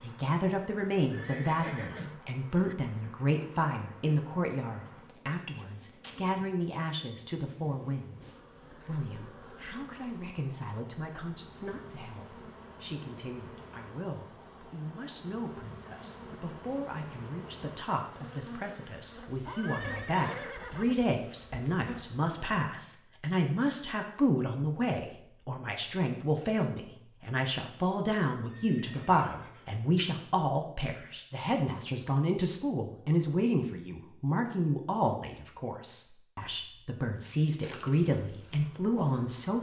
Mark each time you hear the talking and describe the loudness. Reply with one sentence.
You can hear the talking from 0.0 to 39.5 s, getting quieter then louder.